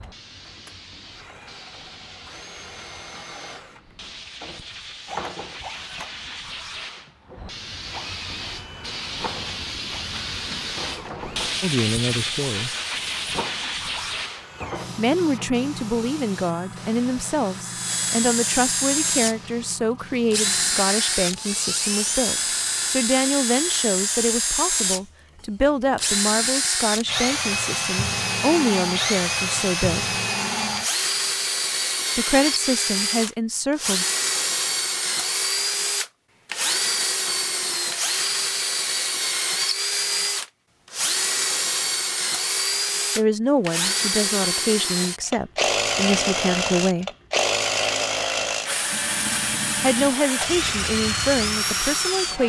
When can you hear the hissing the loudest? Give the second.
12 s.